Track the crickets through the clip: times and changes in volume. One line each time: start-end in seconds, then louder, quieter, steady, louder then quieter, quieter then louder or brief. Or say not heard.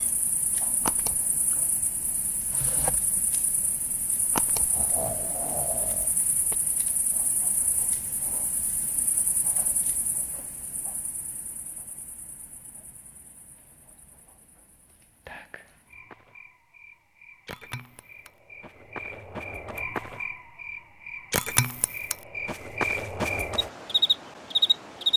0.0-25.1 quieter then louder.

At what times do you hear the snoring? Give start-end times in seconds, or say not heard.
4.7-6.5.